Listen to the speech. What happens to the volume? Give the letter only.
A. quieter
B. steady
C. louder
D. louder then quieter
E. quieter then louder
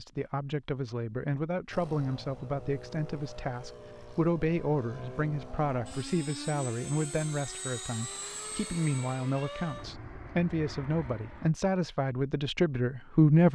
B.